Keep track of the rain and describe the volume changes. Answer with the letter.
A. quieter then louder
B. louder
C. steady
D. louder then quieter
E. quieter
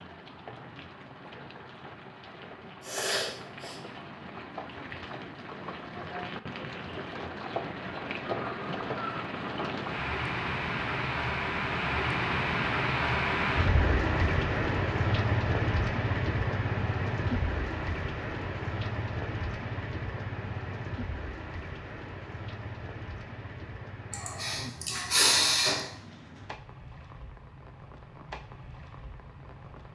D.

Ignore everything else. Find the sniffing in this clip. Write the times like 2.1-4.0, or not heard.
2.8-3.8, 24.1-25.9.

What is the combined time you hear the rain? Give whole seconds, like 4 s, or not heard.
30 s.